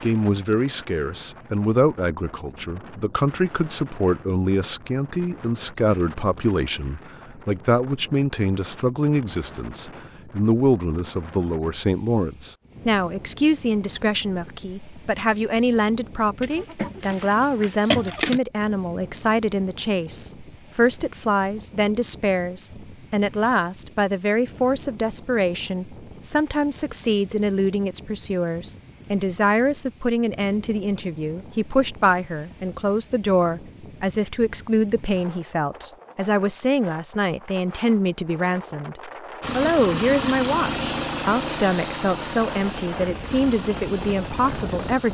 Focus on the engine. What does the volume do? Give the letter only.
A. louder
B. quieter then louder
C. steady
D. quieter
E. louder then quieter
D.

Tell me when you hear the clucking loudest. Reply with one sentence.
The volume of the clucking peaks at 18 seconds.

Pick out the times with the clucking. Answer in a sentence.
The clucking can be heard from 16.4 to 18.4 s.